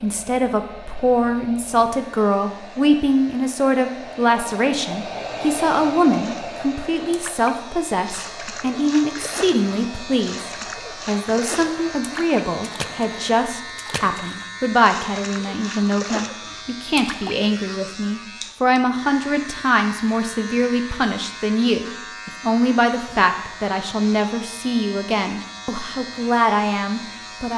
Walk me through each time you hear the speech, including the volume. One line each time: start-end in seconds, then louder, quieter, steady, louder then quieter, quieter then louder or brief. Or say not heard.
0.0-27.5 steady.